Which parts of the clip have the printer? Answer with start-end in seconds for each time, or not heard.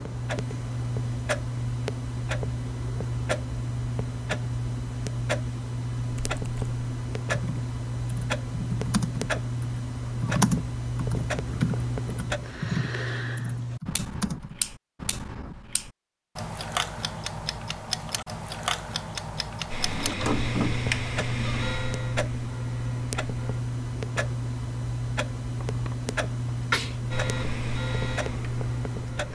19.7-23.6, 27.1-29.3.